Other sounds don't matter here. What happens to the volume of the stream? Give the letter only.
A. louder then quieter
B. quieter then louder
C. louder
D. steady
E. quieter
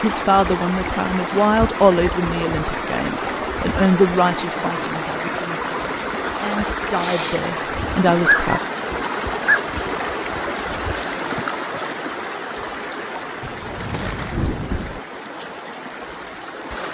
E.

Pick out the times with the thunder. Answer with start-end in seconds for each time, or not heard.
13.4-15.0.